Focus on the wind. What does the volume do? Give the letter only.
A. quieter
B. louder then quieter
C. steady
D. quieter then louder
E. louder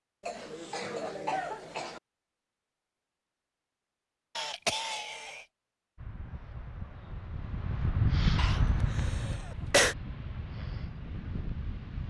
B.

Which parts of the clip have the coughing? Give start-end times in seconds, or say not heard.
0.2-2.0, 4.3-5.5, 8.3-9.9.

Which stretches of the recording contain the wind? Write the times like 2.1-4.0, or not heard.
6.0-12.0.